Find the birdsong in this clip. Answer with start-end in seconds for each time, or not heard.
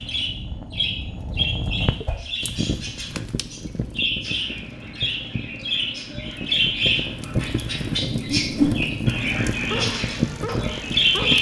0.0-11.3.